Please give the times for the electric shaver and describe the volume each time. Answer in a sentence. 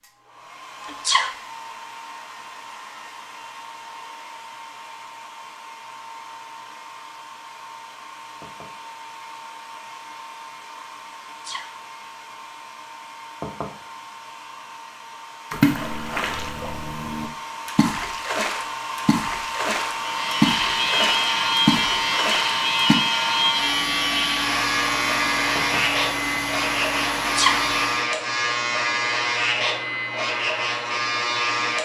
You can hear the electric shaver from 19.9 to 31.8 s, at a steady volume.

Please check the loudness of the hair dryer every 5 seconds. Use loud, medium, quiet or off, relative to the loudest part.
quiet, quiet, quiet, medium, loud, loud, off.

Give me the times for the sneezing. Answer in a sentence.
You can hear the sneezing from 0.8 to 1.4 s, from 11.2 to 11.8 s and from 27.2 to 27.6 s.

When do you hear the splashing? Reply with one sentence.
You can hear the splashing from 15.5 to 22.9 s.